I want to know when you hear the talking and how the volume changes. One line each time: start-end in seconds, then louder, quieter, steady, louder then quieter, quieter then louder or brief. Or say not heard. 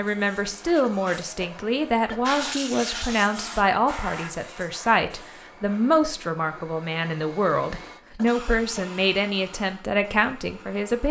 0.0-11.0 steady.